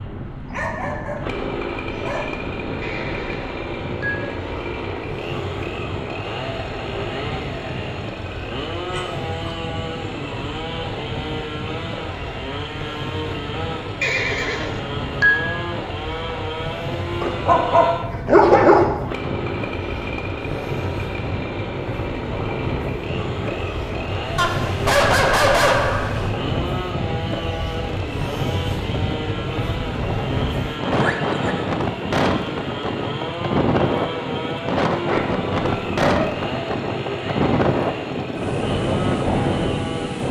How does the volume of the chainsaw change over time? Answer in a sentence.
The loudness of the chainsaw stays about the same.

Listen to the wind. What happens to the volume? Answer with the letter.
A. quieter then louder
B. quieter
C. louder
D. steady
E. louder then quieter
C.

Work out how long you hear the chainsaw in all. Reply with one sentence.
The chainsaw can be heard for 40 seconds in total.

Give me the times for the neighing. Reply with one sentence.
The neighing can be heard from 2.8 to 4.2 s, from 14.0 to 15.6 s and from 30.9 to 31.6 s.